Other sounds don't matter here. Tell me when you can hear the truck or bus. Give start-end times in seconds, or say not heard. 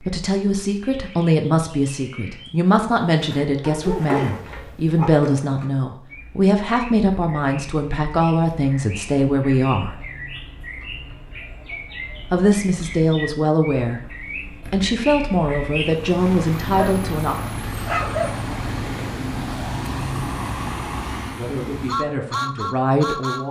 15.8-23.4.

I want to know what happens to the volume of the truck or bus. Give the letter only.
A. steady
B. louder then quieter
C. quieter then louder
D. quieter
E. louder
A.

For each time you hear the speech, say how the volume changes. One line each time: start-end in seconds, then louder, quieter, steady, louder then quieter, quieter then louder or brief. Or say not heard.
0.0-9.9 steady
12.3-17.4 steady
21.4-23.4 brief.